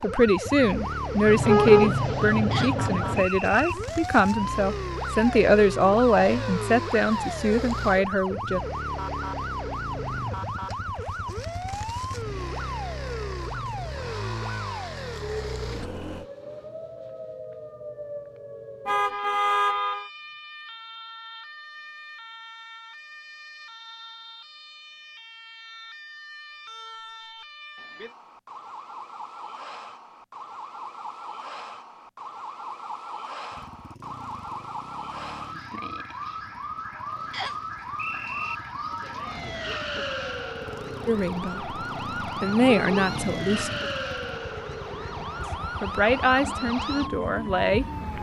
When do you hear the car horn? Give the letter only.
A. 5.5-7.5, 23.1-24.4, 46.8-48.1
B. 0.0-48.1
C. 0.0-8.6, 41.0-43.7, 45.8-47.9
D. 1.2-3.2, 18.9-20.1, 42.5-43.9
D.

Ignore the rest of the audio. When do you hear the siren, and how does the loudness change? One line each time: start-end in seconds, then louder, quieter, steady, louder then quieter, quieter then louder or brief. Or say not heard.
0.0-48.1 quieter then louder.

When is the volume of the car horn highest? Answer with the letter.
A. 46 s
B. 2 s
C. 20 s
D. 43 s
B.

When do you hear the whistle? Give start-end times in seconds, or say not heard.
2.5-3.8, 37.3-38.5.